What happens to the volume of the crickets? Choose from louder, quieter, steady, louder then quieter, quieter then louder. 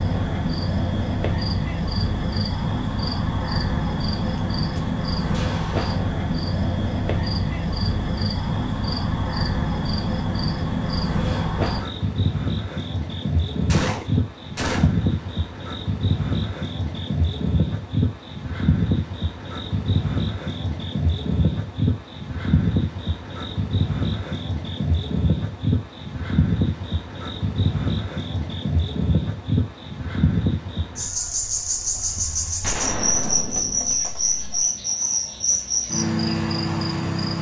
steady.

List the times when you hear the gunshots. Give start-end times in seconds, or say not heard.
4.2-6.0, 13.7-15.1, 32.6-34.5.